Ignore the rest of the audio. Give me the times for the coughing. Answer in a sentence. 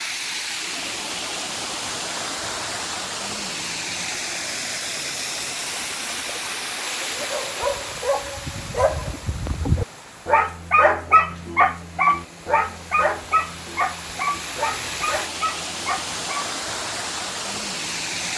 The coughing can't be heard in this clip.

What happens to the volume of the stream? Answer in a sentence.
The loudness of the stream goes down, then up.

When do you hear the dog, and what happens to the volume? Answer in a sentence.
You can hear the dog from 7.2 to 16.5 s, getting louder then quieter.